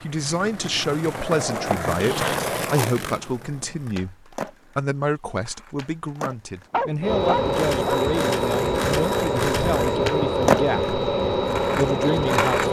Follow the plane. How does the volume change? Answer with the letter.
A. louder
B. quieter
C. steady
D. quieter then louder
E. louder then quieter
C.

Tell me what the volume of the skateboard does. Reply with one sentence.
The loudness of the skateboard goes down, then up.